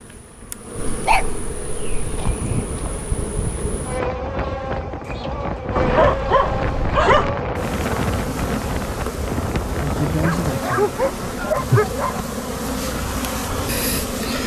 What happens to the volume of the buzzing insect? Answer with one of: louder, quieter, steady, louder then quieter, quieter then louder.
louder.